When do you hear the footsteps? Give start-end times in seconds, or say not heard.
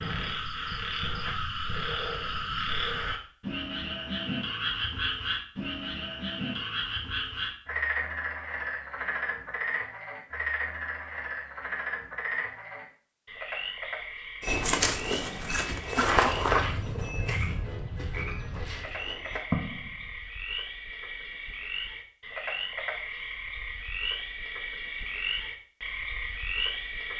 14.4-20.1.